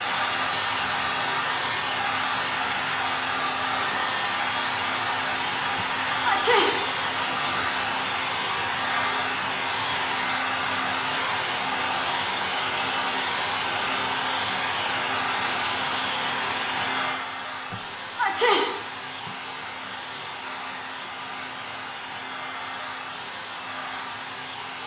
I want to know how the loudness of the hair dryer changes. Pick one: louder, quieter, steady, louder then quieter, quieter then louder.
quieter.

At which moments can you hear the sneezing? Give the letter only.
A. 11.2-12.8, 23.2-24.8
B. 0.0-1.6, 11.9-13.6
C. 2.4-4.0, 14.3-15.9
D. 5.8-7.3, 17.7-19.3
D.